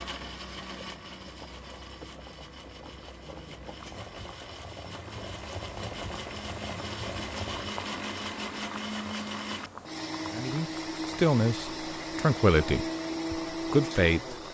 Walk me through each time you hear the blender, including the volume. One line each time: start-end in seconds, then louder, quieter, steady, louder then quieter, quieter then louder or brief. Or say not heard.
0.0-14.4 louder.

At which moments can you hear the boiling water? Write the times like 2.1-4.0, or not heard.
0.0-14.4.